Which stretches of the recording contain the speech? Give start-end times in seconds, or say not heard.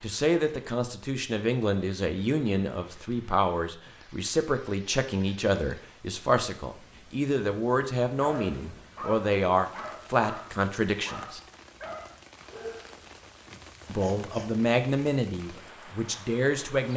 0.0-11.4, 13.8-16.9.